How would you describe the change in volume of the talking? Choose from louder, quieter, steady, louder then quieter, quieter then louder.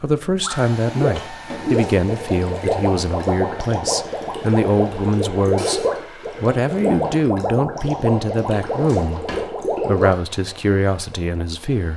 steady.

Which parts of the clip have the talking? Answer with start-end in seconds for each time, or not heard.
0.0-11.9.